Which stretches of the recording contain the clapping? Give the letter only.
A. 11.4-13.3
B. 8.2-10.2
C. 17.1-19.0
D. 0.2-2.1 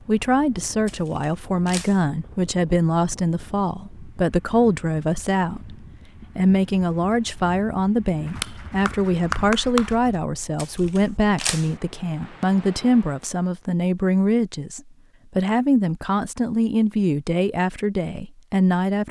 B.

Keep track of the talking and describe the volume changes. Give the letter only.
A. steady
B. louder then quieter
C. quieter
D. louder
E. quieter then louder
A.